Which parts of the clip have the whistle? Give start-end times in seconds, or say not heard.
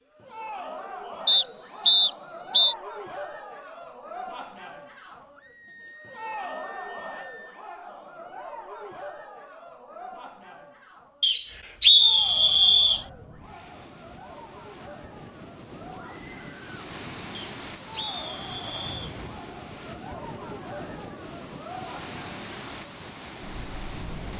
1.2-2.8, 11.2-13.1, 17.4-19.1.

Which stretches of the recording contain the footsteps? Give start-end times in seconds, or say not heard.
not heard.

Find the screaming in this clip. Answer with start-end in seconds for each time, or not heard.
5.3-7.6, 15.9-16.6.